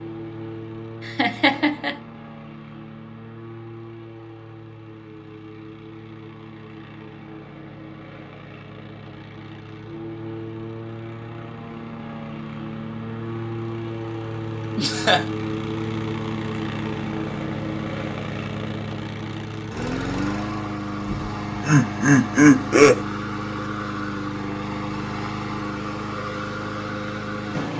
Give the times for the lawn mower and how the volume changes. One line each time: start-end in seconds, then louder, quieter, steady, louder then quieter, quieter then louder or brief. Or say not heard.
0.0-27.7 louder.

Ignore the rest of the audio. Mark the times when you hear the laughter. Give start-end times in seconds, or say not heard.
1.1-1.9, 14.8-15.2, 21.1-23.1.